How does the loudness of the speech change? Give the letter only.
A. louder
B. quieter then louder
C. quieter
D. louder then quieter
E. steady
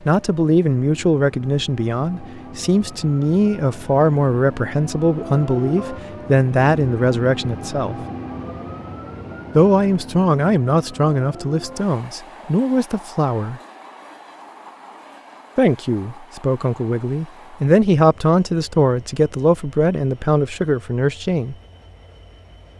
E.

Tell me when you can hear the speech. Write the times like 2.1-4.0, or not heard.
0.0-8.0, 9.6-13.6, 15.6-21.6.